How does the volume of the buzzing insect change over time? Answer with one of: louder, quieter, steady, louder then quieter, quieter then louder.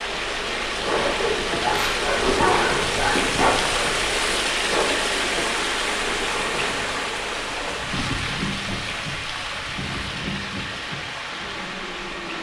quieter.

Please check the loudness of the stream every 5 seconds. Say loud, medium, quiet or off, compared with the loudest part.
loud, loud, medium.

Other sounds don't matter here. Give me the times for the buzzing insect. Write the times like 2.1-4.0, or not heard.
0.0-12.3.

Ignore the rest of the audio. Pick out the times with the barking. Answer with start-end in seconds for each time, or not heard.
1.0-3.5.